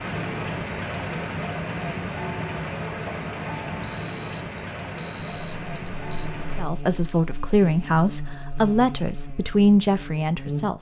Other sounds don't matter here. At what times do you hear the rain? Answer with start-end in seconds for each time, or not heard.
0.0-6.7.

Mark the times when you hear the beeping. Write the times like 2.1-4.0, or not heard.
3.8-6.3.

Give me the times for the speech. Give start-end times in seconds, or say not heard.
6.5-10.7.